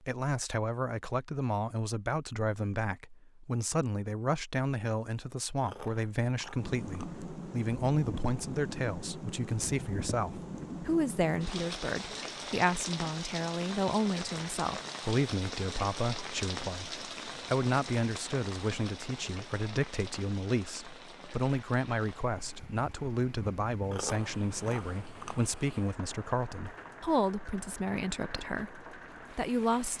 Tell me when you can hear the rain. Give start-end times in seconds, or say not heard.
6.5-29.9.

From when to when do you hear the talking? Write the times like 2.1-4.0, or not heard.
0.0-29.9.